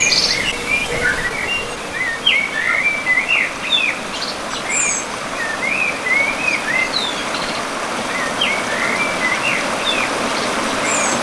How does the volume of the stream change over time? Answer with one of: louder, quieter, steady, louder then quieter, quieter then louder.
louder.